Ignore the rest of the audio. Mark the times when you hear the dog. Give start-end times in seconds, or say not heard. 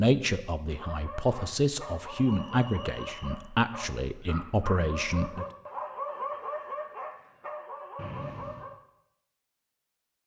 0.7-8.8.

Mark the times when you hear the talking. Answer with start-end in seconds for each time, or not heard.
0.0-5.5.